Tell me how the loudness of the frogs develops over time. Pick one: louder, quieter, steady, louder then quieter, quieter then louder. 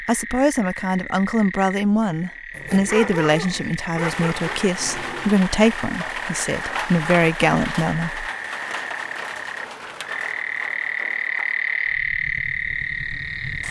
louder.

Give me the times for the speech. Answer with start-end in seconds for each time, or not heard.
0.0-8.3.